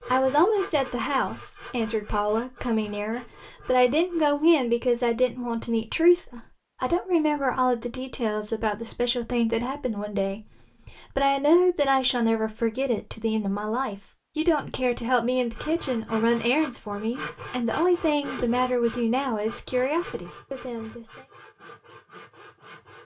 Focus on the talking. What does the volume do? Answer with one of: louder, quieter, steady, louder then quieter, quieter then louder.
steady.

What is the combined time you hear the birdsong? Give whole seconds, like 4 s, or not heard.
not heard.